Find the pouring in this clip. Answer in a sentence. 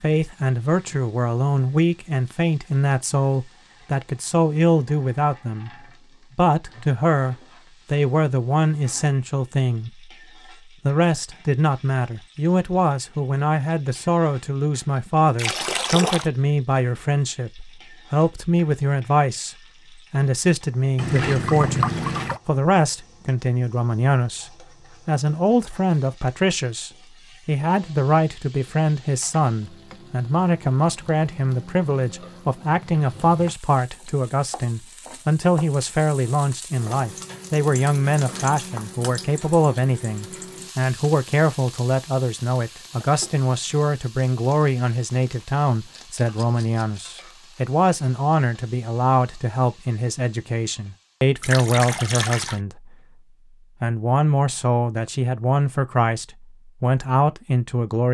The pouring can be heard from 15.3 to 16.3 s, from 20.9 to 22.4 s and from 51.4 to 52.6 s.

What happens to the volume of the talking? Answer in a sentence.
The loudness of the talking stays about the same.